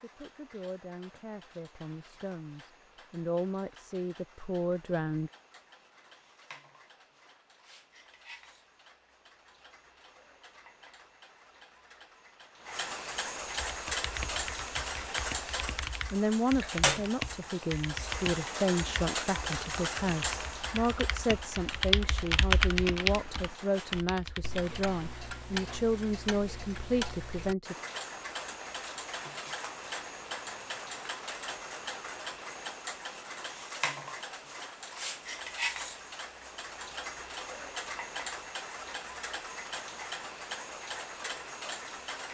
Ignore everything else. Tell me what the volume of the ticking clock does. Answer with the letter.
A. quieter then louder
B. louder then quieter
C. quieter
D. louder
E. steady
D.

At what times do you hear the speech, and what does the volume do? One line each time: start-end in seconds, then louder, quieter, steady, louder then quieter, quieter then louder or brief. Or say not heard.
0.0-5.3 louder
16.1-27.8 steady.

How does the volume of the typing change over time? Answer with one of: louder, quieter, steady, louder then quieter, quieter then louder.
louder.